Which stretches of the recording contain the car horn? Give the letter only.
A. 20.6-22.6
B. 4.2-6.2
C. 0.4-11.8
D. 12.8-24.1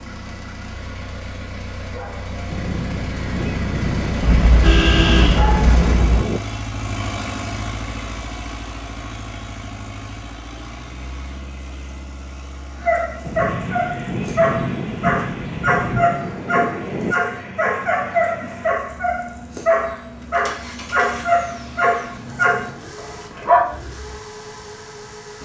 B.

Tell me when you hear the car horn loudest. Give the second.
5 s.